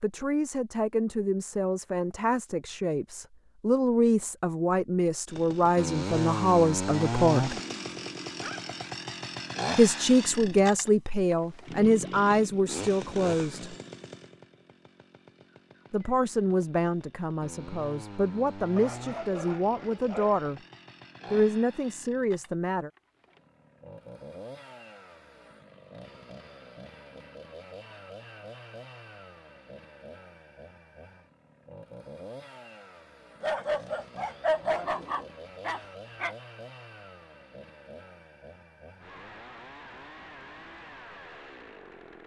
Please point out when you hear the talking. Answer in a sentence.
You can hear the talking from 0.0 to 7.5 s, from 9.8 to 13.8 s, from 15.9 to 20.6 s and from 21.3 to 22.9 s.